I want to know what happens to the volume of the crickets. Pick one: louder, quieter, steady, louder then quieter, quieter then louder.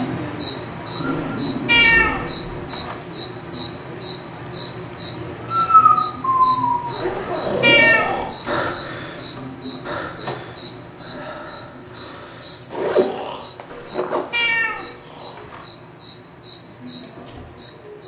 quieter.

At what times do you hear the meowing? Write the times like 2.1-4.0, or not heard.
1.1-3.0, 7.0-8.8, 13.7-15.7.